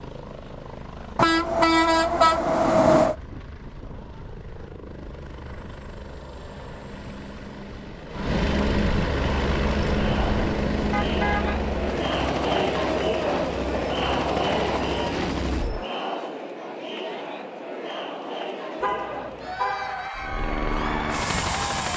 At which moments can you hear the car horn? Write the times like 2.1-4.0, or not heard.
1.1-3.1, 10.9-11.6, 18.8-20.1.